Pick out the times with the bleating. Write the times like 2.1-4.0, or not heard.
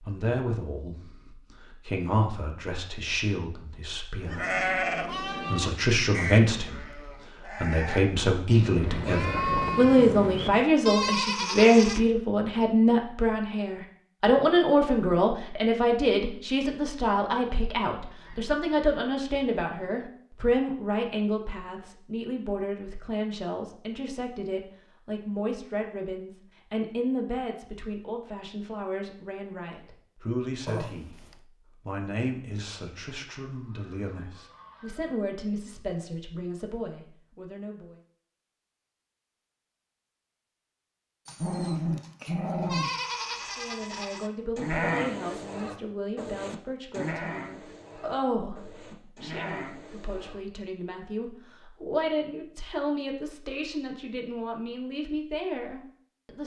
4.2-12.0, 42.6-50.4.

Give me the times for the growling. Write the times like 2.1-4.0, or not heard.
9.2-10.7, 30.6-31.4, 41.2-43.0.